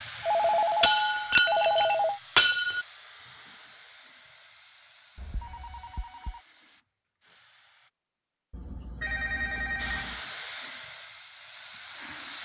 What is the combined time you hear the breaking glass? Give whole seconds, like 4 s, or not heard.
2 s.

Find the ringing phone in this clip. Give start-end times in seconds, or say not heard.
0.2-2.2, 5.2-6.4, 8.5-10.2.